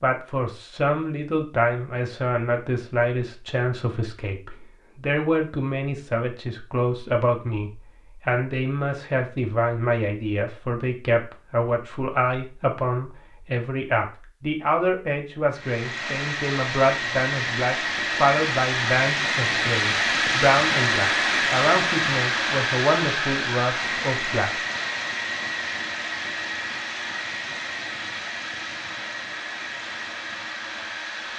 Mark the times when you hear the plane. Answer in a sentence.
You can hear the plane from 15.5 to 31.3 s.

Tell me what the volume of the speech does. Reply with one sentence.
The volume of the speech stays about the same.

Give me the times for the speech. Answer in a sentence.
You can hear the speech from 0.0 to 24.5 s.